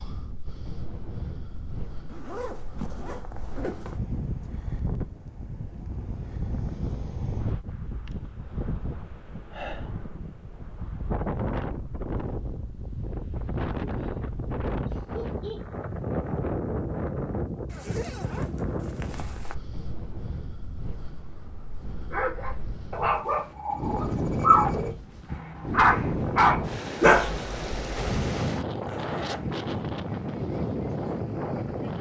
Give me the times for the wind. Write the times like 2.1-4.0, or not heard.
0.0-31.9.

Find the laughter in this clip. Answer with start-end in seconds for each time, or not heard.
14.8-15.6.